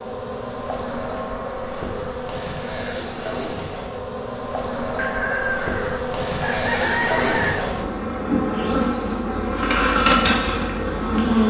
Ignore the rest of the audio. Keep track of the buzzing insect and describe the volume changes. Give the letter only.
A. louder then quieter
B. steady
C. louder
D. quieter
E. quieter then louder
C.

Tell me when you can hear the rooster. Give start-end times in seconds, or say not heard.
5.0-7.7.